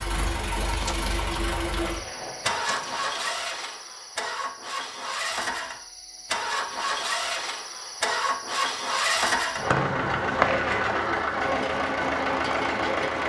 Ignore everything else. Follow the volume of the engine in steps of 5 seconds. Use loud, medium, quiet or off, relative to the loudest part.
medium, loud, loud.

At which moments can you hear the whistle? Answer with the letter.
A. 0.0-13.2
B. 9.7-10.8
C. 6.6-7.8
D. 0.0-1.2
B.